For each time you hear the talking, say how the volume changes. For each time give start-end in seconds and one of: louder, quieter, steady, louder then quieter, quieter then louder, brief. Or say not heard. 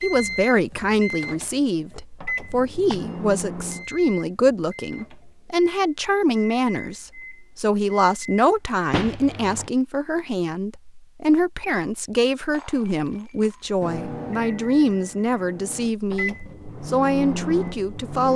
0.0-18.3 steady.